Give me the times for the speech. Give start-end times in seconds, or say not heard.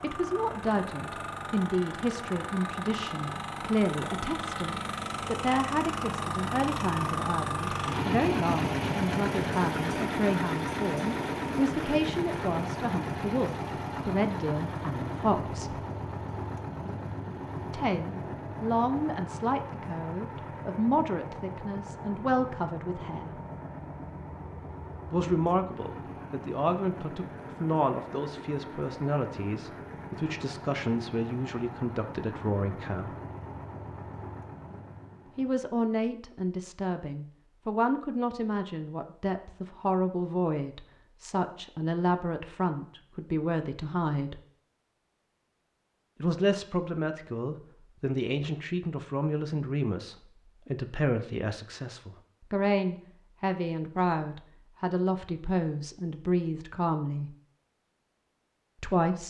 0.0-15.8, 17.6-23.4, 25.1-33.1, 35.4-44.4, 46.2-57.4, 58.8-59.2.